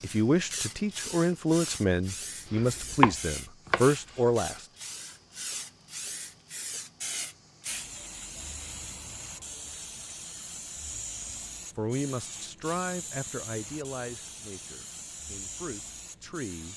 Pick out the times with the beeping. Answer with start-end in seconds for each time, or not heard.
not heard.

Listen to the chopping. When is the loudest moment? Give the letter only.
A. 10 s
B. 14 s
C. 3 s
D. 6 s
C.